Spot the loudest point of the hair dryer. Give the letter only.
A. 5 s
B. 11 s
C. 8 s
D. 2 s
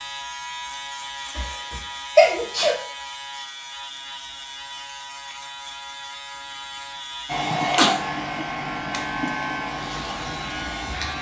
C.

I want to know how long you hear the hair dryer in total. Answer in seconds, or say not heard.
4 s.